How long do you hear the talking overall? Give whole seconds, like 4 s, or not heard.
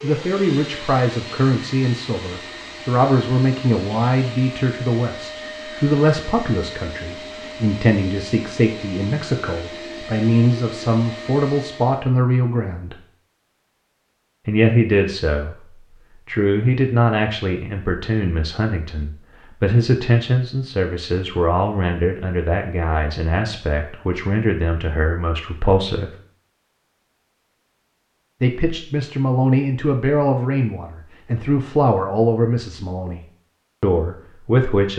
31 s.